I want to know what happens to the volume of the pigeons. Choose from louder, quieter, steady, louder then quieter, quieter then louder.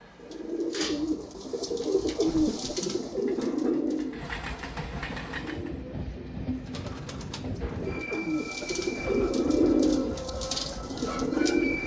quieter then louder.